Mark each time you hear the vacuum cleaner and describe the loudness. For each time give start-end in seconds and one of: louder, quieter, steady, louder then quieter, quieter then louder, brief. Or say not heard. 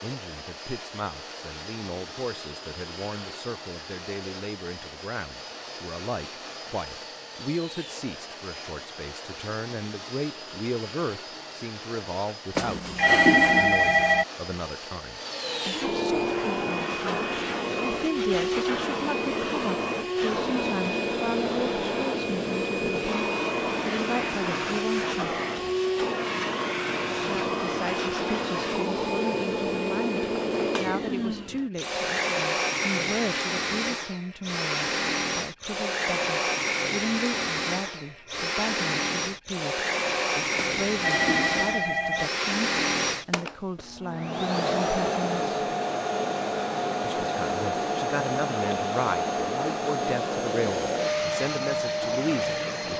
0.0-52.9 louder.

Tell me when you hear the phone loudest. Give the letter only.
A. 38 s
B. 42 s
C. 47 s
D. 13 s
D.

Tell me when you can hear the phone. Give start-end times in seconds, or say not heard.
12.6-14.2, 40.5-42.3.